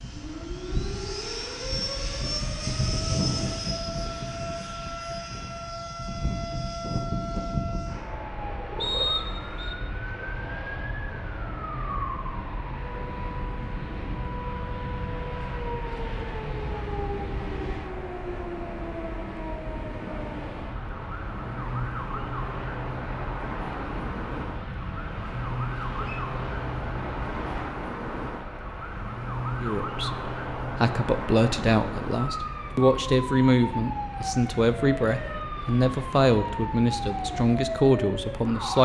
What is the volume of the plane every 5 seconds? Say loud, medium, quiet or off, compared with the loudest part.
loud, loud, medium, medium, medium, medium, medium, medium.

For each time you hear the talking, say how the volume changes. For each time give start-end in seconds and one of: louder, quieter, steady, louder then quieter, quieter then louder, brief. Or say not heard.
29.6-38.8 steady.